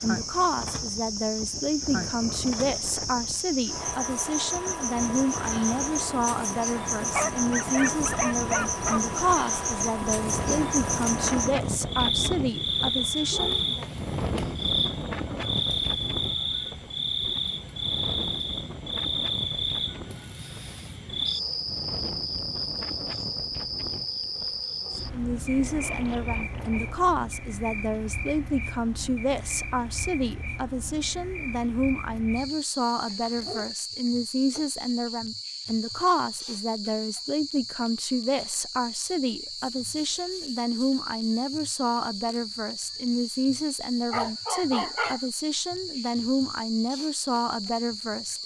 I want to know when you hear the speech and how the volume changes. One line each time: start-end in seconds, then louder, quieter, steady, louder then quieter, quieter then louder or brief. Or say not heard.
0.0-13.7 steady
24.9-48.4 steady.